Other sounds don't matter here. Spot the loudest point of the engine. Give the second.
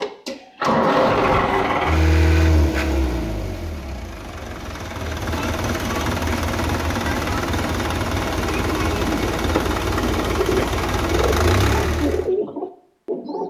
1 s.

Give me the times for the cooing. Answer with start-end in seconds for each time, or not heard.
8.4-13.4.